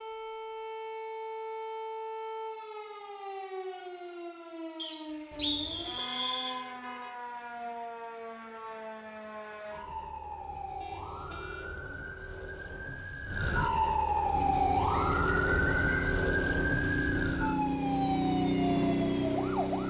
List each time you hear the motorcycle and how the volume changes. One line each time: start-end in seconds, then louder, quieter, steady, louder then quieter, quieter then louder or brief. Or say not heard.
14.3-19.8 louder.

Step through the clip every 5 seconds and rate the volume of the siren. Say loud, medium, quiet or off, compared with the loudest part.
medium, medium, loud, loud.